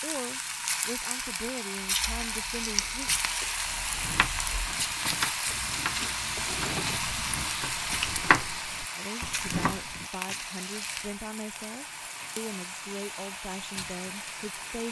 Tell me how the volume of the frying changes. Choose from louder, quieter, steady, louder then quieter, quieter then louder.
quieter.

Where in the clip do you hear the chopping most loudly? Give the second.
8 s.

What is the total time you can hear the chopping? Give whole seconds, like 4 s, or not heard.
6 s.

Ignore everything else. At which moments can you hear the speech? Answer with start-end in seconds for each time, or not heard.
0.0-3.1, 8.9-14.8.